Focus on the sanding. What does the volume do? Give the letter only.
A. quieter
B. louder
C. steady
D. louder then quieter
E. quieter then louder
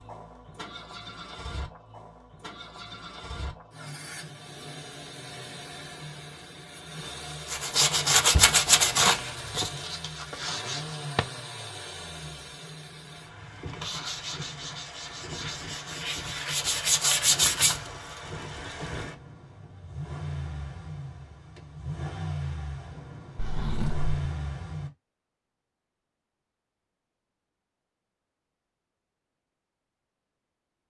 E.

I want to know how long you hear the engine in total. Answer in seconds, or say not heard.
25 s.